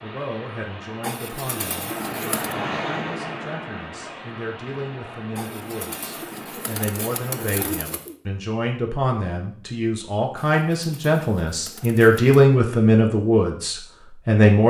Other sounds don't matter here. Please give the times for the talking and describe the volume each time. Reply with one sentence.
You can hear the talking from 0.0 to 14.6 s, getting louder.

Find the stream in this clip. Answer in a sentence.
You can hear the stream from 0.0 to 7.8 s.